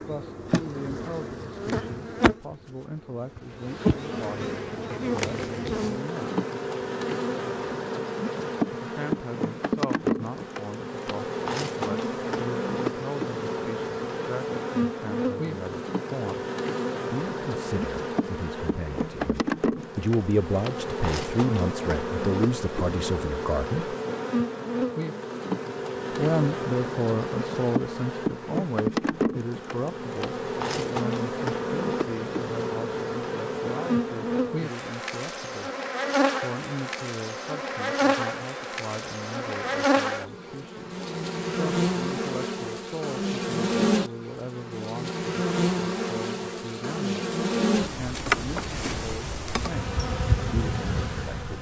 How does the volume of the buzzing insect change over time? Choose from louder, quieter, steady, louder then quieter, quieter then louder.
steady.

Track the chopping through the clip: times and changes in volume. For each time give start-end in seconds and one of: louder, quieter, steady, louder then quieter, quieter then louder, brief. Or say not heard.
not heard.